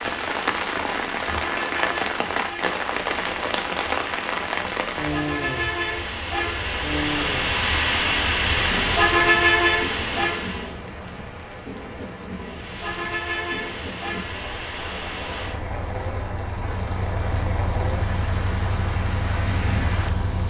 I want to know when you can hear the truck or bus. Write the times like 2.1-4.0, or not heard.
0.0-10.8, 12.3-20.4.